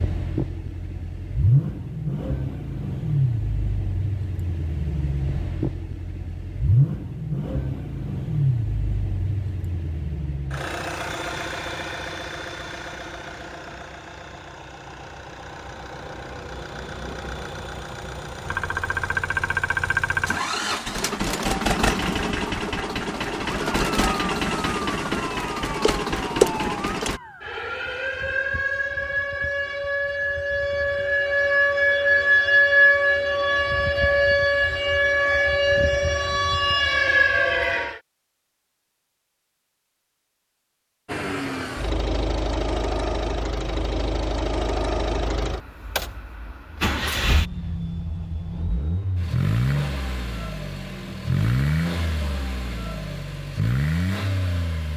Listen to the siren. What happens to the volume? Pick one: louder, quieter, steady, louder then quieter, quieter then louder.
louder.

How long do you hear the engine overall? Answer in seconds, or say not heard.
41 s.